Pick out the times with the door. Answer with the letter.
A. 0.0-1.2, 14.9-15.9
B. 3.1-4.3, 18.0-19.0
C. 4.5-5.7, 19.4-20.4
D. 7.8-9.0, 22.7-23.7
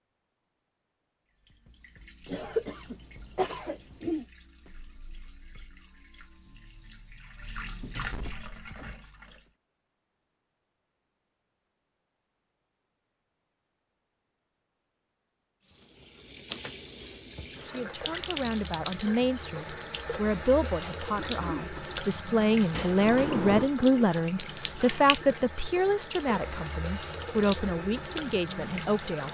D.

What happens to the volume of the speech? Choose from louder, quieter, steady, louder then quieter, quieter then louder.
louder then quieter.